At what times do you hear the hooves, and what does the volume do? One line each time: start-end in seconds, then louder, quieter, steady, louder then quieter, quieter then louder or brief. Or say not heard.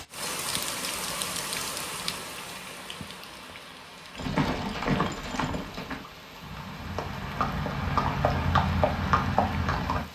4.2-10.1 quieter then louder.